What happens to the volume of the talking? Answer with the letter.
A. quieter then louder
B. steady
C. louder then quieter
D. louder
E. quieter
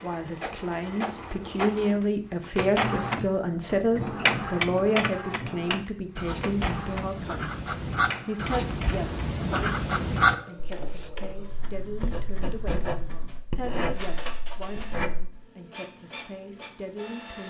E.